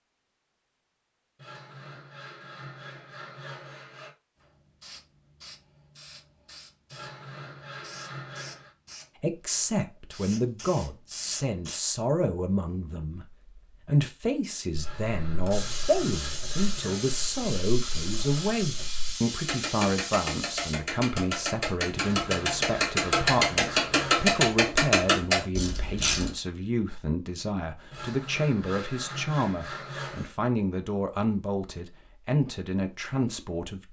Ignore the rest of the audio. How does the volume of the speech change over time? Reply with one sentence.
The volume of the speech stays about the same.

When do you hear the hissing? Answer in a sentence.
The hissing can be heard from 4.4 to 11.8 s and from 15.5 to 20.8 s.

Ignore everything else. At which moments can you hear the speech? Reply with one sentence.
You can hear the speech from 9.2 to 33.8 s.